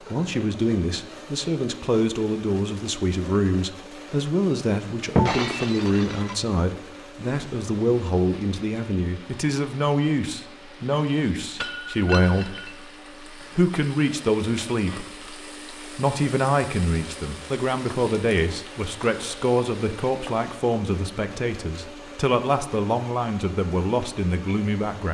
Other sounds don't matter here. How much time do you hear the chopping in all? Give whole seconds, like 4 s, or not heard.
not heard.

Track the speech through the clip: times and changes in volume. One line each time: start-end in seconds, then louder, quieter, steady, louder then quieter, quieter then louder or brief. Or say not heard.
0.1-25.0 steady.